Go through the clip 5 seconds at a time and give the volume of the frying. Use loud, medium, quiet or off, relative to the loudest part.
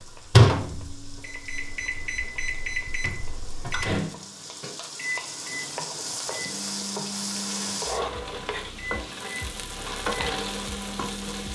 quiet, loud, loud.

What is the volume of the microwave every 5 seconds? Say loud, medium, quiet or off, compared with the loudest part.
loud, medium, quiet.